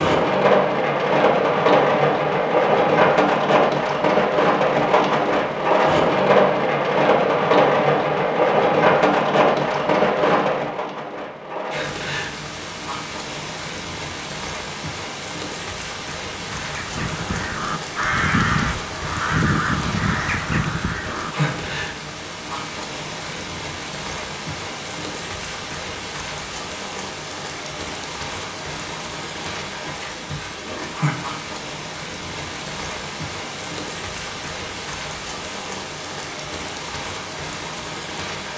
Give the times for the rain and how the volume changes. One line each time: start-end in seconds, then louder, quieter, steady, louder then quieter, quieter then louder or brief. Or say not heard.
0.0-38.5 quieter.